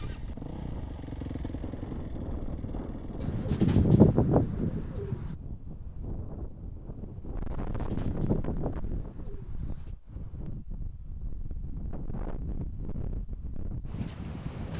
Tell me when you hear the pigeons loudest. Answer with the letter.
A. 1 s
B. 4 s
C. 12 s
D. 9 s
B.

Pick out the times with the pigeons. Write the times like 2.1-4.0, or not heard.
3.2-5.3, 7.5-9.8.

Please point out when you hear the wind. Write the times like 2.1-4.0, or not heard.
0.0-14.7.